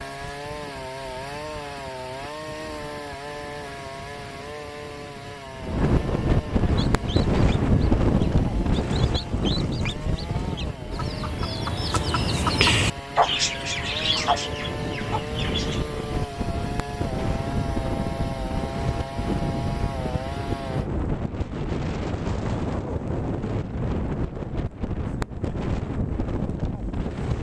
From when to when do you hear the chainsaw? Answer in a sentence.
The chainsaw can be heard from 0.0 to 20.9 s.